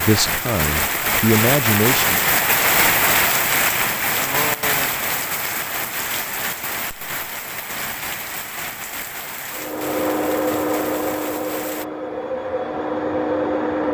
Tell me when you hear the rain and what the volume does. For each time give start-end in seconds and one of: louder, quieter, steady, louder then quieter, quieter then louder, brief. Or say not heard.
0.0-11.8 quieter.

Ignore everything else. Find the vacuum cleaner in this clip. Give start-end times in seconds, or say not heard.
9.5-13.8.